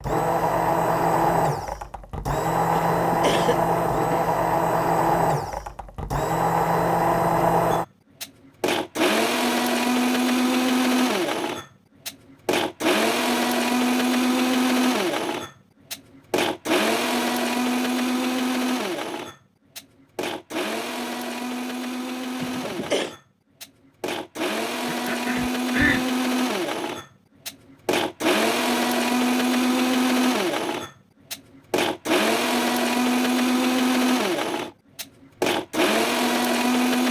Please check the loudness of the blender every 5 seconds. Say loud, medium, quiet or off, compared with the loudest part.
loud, loud, loud, loud, medium, loud, loud, loud.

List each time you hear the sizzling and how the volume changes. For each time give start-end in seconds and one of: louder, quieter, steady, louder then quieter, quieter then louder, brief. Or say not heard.
not heard.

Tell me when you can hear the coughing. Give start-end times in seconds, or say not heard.
2.8-4.3, 22.4-23.1, 24.9-26.1.